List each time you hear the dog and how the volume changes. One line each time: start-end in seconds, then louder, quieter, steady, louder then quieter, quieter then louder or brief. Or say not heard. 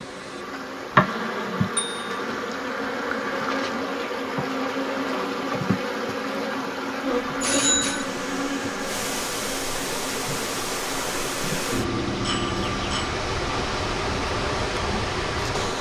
not heard.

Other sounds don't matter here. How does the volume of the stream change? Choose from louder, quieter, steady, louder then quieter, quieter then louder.
louder.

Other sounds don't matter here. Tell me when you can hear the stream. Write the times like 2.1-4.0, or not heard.
0.0-15.7.